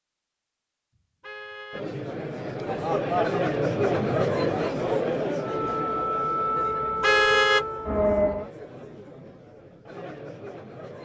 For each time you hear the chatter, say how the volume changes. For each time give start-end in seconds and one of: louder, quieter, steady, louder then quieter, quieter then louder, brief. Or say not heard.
1.7-11.0 quieter.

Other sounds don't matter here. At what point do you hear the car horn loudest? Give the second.
7 s.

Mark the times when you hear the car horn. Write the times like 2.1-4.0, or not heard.
0.9-1.9, 7.0-7.7.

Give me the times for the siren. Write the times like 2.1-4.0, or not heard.
5.3-8.5.